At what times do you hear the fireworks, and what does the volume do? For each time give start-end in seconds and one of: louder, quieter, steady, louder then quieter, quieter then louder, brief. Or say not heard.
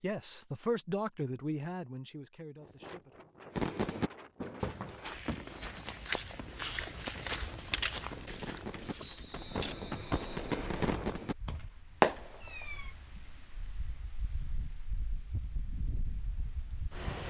3.5-12.9 quieter then louder.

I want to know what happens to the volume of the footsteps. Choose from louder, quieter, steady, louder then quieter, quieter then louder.
louder then quieter.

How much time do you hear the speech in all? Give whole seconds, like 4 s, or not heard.
3 s.